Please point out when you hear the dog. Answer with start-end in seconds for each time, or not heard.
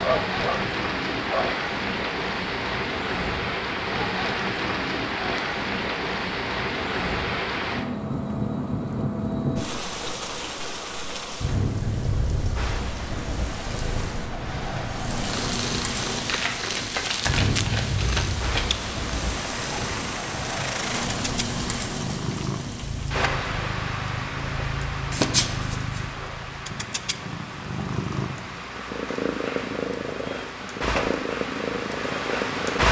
0.0-1.6.